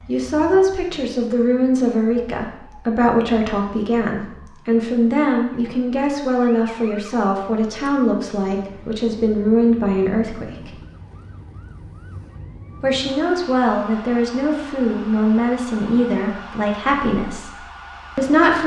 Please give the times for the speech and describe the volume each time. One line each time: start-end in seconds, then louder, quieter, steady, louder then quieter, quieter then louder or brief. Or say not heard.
0.1-10.8 steady
12.8-18.6 quieter.